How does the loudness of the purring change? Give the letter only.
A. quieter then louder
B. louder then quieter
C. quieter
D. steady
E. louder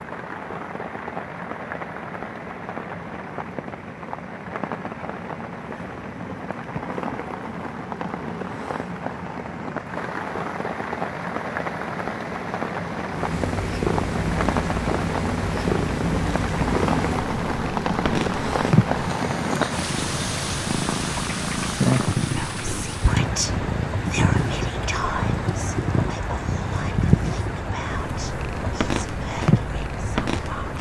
D.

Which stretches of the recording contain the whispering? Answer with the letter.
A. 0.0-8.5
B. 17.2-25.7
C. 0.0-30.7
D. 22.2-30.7
D.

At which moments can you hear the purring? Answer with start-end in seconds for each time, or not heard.
13.1-30.7.